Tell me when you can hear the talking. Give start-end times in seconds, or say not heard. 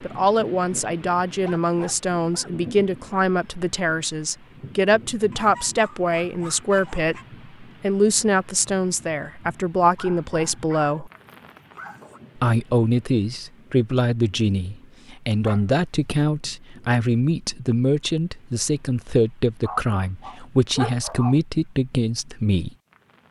0.0-11.1, 12.3-22.7.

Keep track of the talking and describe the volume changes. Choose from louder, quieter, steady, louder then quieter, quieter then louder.
steady.